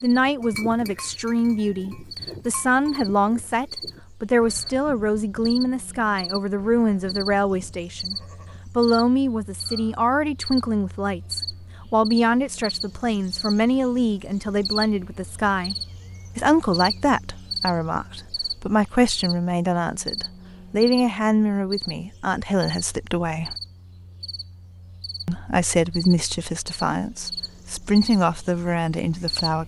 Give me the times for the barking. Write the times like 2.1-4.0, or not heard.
not heard.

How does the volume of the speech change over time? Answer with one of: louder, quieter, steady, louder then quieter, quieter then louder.
steady.